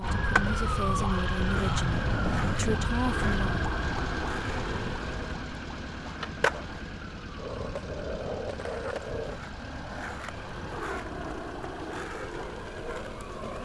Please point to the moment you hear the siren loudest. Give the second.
2 s.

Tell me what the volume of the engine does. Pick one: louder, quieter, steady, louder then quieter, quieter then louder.
quieter.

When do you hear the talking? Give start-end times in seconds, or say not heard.
0.0-3.7.